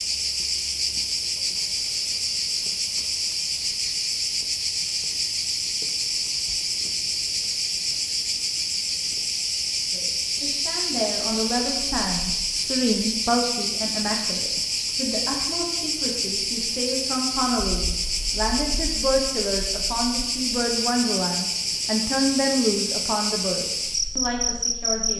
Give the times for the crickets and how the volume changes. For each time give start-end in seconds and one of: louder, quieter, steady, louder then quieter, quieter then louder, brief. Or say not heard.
0.0-25.1 steady.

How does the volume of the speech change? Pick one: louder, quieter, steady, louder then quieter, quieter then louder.
steady.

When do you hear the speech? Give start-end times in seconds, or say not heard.
9.9-25.1.